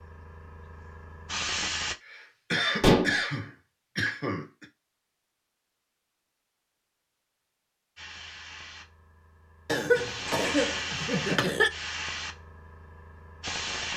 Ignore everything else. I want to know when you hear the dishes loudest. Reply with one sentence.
The loudest moment of the dishes is at 3 seconds.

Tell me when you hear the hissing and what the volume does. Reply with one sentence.
The hissing can be heard briefly from 0.0 to 1.9 s; and from 8.0 to 13.9 s, getting louder then quieter.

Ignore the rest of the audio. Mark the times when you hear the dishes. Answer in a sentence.
The dishes can be heard from 2.8 to 3.2 s and from 10.2 to 10.8 s.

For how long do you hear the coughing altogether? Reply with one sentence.
You can hear the coughing for 5 seconds altogether.